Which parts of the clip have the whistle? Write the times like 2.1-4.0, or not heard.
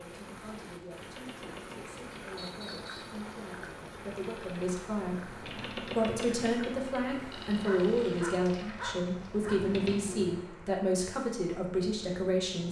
2.4-3.2.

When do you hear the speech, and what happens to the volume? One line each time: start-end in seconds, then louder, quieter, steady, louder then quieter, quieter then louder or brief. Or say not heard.
0.0-12.6 louder.